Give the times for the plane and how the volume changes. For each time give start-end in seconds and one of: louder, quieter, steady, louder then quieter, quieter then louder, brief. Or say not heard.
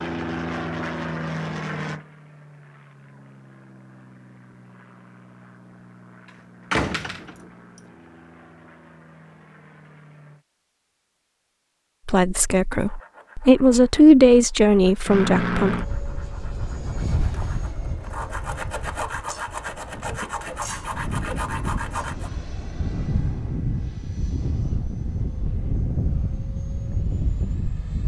0.0-10.4 quieter
15.1-28.0 quieter then louder.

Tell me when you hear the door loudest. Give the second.
7 s.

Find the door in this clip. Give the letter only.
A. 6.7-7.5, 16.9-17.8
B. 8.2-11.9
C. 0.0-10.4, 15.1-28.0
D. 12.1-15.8
A.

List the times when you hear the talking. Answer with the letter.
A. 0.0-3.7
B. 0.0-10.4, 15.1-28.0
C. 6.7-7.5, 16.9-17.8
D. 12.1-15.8
D.